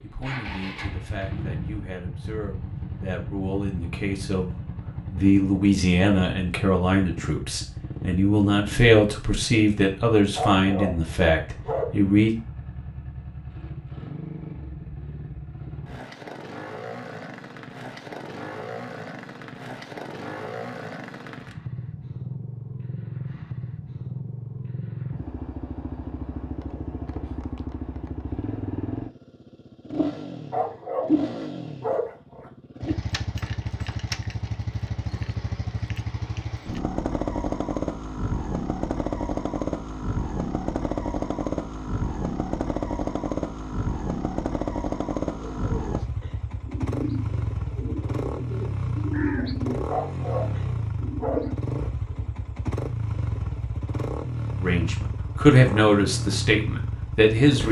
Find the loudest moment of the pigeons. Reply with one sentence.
The volume of the pigeons peaks at 49 seconds.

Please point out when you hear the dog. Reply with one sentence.
The dog can be heard from 10.3 to 11.9 s, from 30.5 to 32.5 s and from 49.9 to 51.9 s.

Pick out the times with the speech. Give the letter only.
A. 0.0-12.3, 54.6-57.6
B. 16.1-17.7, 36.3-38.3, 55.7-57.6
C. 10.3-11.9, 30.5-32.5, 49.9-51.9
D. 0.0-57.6
A.